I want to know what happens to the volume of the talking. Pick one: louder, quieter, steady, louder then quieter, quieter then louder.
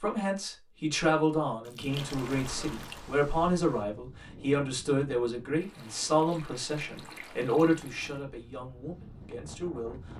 quieter.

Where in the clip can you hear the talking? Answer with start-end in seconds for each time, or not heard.
0.0-10.1.